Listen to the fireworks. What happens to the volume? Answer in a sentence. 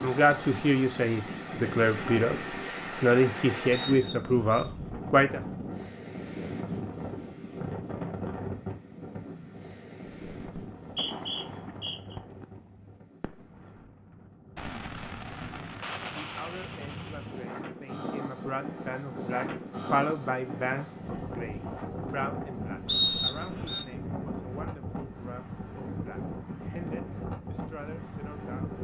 The volume of the fireworks goes down, then up.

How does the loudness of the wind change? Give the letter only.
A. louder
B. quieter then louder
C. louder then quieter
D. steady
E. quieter
B.